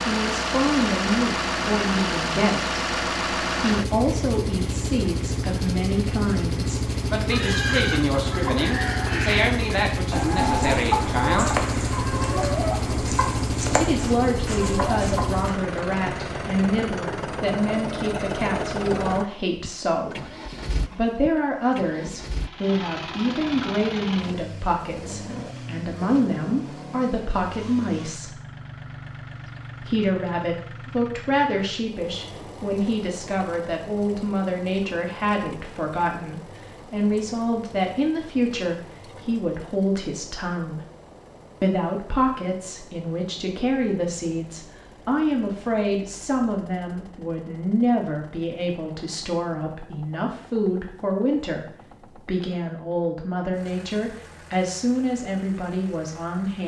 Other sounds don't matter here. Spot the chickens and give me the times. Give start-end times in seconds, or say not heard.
7.3-15.5.